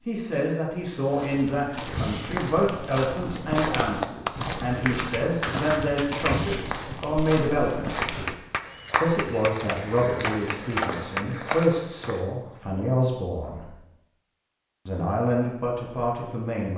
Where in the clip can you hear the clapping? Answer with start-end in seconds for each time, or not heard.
3.4-11.2.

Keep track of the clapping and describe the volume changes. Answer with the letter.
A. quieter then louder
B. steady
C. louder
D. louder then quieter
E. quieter
A.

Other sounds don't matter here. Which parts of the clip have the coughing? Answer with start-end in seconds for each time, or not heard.
not heard.